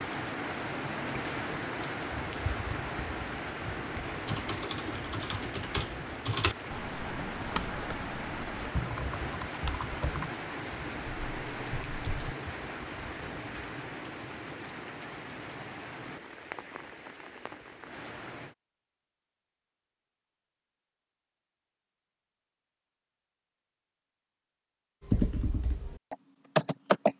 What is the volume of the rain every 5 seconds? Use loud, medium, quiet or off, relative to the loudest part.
loud, loud, loud, medium, off, off.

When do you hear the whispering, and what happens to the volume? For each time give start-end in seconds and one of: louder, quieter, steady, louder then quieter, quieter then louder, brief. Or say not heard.
not heard.